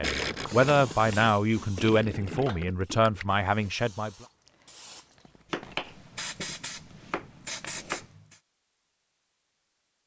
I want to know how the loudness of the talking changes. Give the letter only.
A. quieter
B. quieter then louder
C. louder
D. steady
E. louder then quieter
A.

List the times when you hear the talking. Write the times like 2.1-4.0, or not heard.
0.0-4.1.